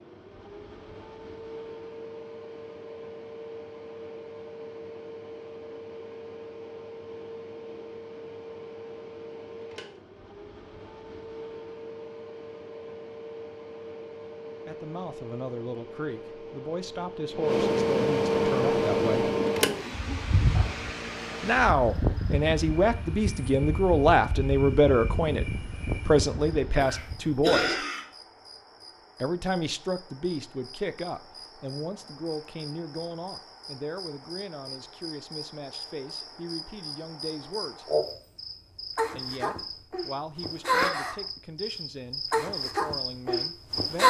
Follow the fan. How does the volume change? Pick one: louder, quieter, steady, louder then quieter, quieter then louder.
louder then quieter.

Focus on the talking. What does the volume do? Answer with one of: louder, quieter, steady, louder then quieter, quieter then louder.
louder then quieter.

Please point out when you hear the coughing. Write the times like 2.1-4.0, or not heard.
26.8-28.1.